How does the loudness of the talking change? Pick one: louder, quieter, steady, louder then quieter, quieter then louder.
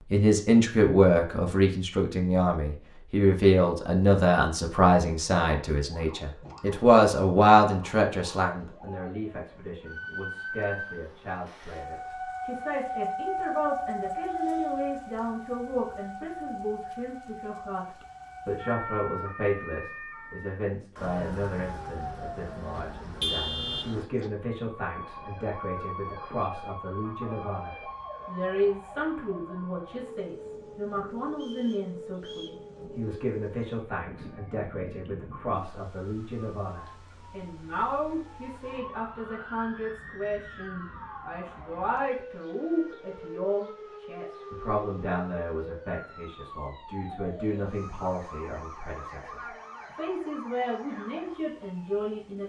quieter.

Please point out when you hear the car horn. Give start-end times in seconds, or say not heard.
22.8-23.9.